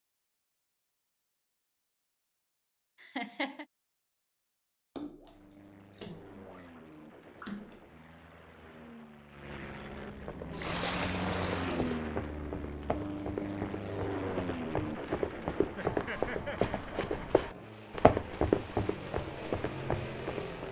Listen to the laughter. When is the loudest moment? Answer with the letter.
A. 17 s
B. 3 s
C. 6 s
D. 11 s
B.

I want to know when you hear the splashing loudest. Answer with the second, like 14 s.
11 s.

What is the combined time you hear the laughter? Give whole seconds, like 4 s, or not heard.
2 s.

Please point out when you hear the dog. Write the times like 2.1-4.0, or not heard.
not heard.